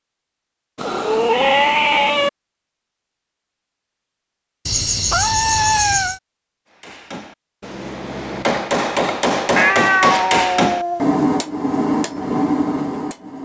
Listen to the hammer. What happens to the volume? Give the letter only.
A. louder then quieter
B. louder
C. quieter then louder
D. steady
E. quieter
B.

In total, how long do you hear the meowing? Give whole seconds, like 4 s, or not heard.
5 s.